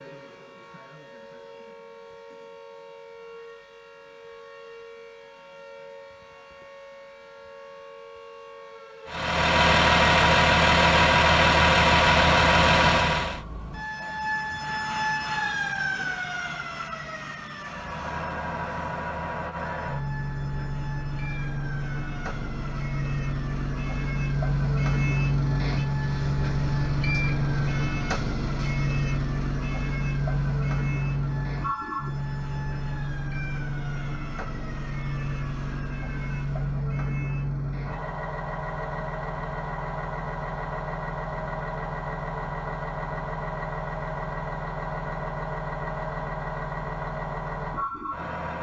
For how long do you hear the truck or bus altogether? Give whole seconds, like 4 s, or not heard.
35 s.